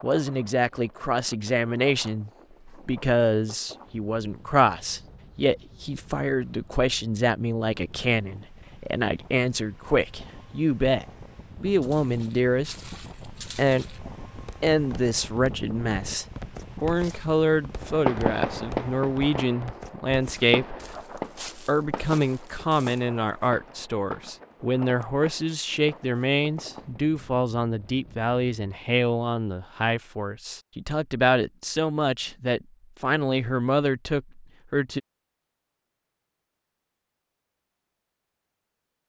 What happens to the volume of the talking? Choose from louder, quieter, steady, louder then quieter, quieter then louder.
steady.